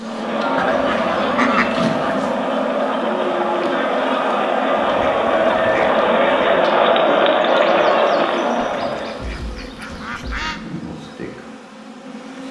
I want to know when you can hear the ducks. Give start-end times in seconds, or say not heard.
0.6-2.3, 4.8-6.7, 8.6-10.6.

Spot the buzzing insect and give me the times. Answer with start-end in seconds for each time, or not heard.
0.0-12.4.